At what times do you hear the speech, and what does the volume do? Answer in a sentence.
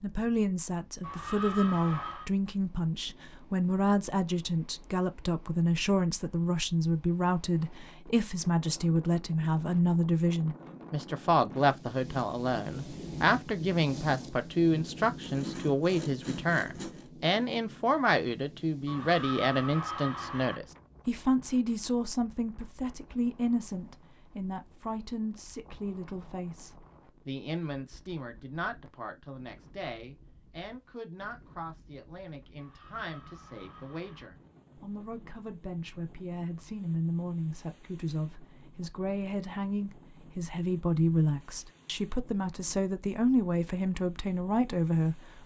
You can hear the speech from 0.0 to 45.4 s, getting quieter then louder.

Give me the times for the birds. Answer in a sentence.
You can't hear the birds here.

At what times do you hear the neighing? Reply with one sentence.
The neighing can be heard from 1.0 to 2.3 s, from 18.9 to 20.6 s and from 32.5 to 34.3 s.